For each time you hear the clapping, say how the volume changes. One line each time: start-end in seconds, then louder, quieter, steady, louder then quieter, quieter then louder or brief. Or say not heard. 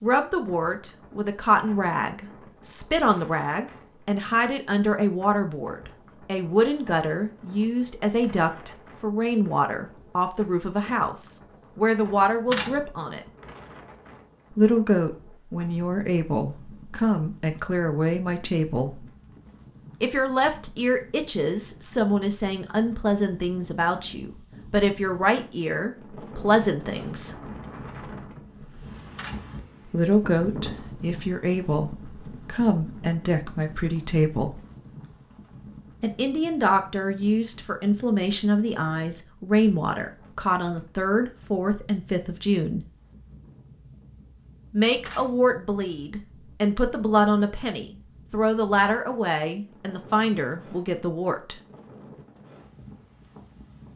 not heard.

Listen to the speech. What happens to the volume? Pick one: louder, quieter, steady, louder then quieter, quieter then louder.
steady.